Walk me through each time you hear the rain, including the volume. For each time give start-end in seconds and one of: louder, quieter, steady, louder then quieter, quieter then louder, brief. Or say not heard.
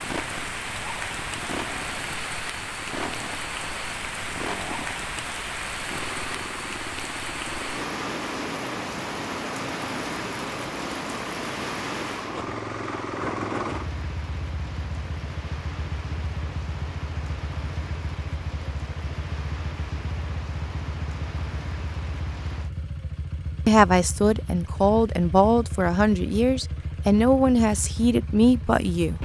0.0-22.7 quieter.